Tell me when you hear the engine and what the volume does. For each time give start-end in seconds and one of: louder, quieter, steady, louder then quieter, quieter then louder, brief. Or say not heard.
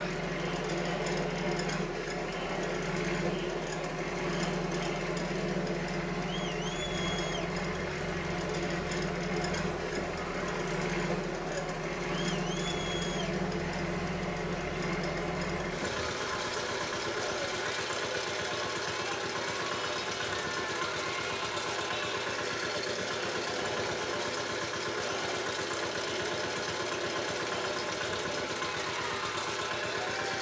0.0-30.3 steady.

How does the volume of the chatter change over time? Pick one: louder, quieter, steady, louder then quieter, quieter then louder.
steady.